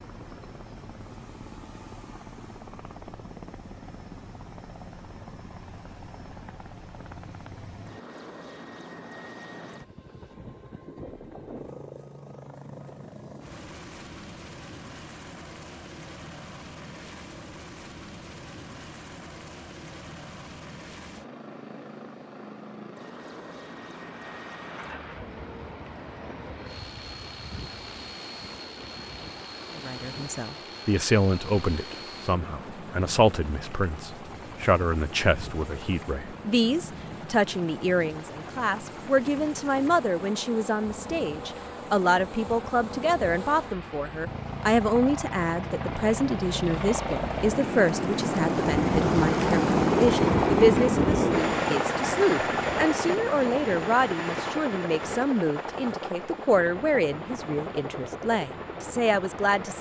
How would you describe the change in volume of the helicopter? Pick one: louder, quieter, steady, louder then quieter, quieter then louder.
louder.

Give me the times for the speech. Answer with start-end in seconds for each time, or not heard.
29.8-59.7.